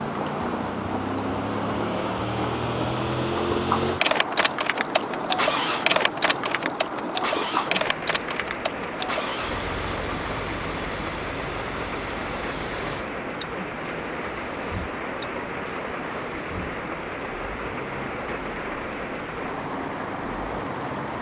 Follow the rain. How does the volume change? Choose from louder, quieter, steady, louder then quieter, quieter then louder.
steady.